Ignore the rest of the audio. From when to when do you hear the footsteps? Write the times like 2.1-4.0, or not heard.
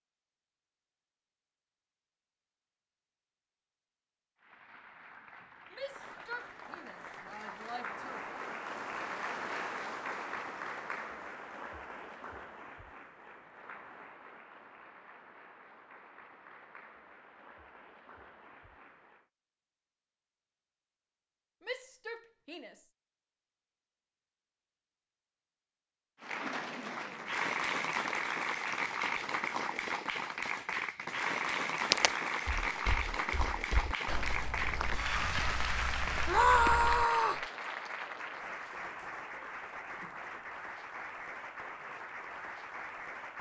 31.9-37.0.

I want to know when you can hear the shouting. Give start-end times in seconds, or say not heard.
5.7-8.3, 21.6-22.8, 36.2-37.5.